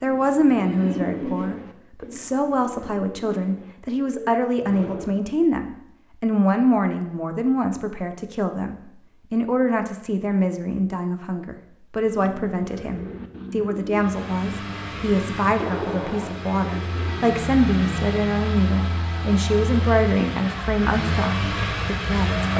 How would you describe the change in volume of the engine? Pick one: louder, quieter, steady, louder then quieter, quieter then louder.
louder.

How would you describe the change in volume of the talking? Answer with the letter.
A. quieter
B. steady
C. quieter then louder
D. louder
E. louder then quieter
B.